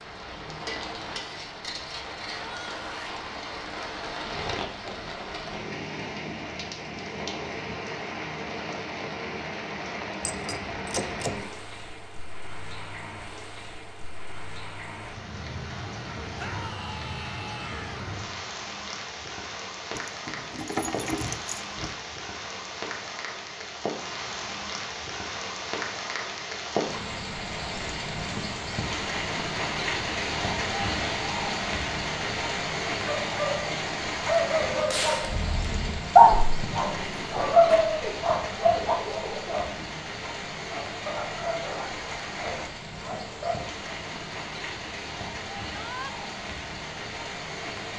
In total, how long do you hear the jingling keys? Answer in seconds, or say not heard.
4 s.